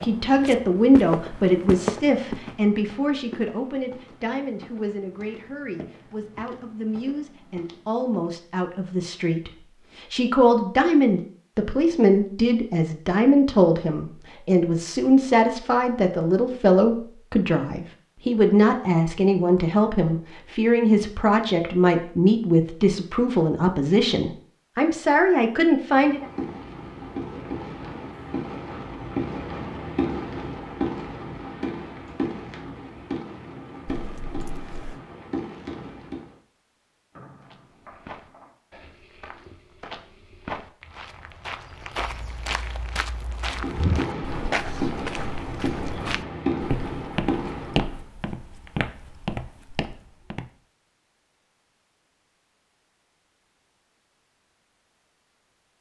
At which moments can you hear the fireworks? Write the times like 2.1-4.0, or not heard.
25.9-36.4, 43.5-48.0.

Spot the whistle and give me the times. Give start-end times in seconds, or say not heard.
37.1-38.5.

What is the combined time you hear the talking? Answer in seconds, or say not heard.
26 s.